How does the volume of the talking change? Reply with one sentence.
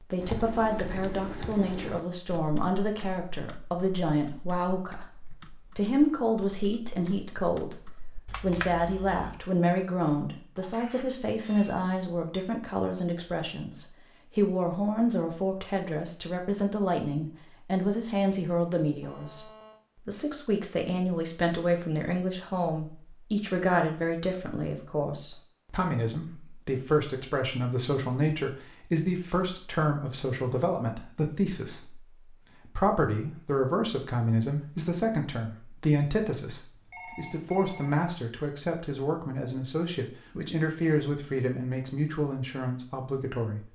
The volume of the talking stays about the same.